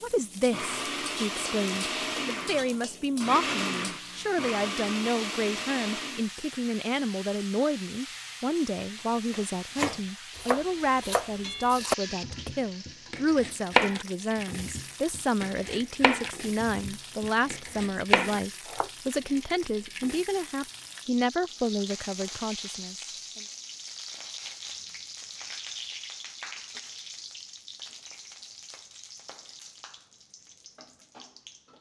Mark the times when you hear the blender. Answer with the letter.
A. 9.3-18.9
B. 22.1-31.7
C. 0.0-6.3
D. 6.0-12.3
C.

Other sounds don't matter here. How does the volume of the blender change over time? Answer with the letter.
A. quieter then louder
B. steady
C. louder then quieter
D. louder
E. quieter
B.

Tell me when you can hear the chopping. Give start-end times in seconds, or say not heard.
9.3-18.9.